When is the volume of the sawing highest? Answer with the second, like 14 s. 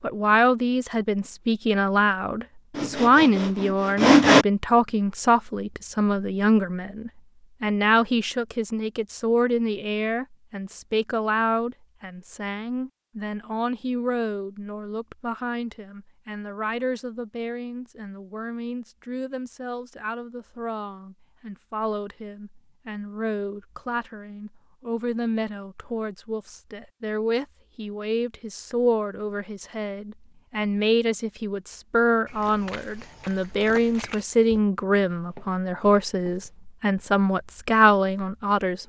4 s.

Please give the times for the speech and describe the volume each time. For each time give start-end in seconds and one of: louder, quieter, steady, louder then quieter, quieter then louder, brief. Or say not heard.
0.0-38.8 quieter then louder.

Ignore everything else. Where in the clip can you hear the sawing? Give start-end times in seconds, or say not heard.
2.8-4.5.